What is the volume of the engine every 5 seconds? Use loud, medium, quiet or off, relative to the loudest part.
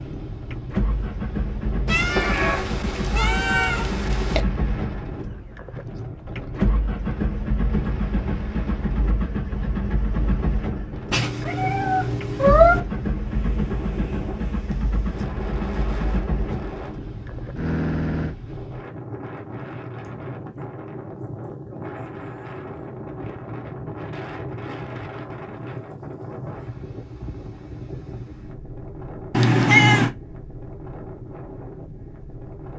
loud, loud, loud, loud, off, off, off.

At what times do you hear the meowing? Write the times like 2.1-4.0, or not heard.
1.9-4.4, 11.1-12.8, 29.3-30.1.